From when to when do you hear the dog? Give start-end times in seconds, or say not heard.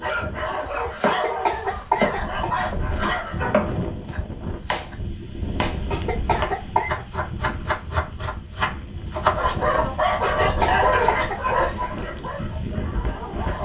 0.0-3.5, 9.3-13.6.